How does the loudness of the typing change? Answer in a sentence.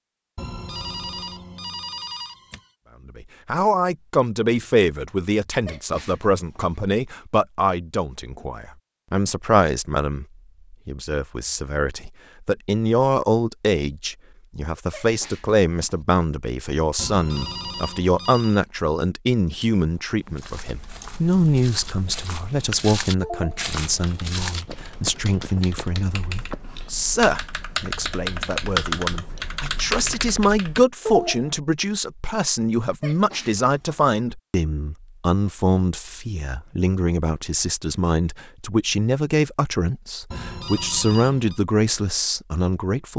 The loudness of the typing goes up.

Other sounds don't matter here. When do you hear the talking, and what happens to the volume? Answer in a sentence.
You can hear the talking from 3.0 to 43.1 s, at a steady volume.